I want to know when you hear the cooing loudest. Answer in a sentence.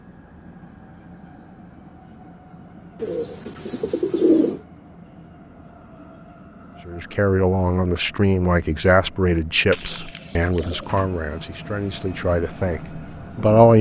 The loudest moment of the cooing is at 4 seconds.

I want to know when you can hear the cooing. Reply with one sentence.
You can hear the cooing from 3.0 to 4.6 s and from 9.7 to 10.9 s.